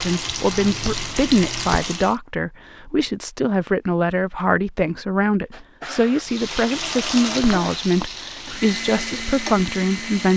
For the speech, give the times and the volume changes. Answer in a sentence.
You can hear the speech from 0.0 to 10.3 s, at a steady volume.